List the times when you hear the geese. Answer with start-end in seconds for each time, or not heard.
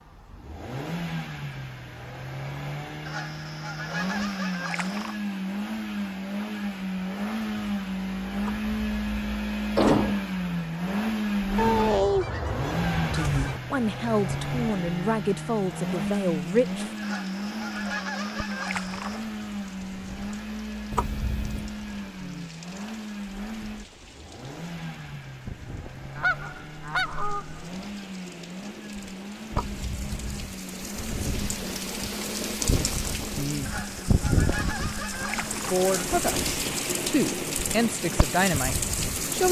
3.0-5.2, 11.6-13.6, 17.0-19.2, 26.1-27.7, 33.6-35.9.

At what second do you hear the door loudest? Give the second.
10 s.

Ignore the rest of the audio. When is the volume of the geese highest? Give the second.
12 s.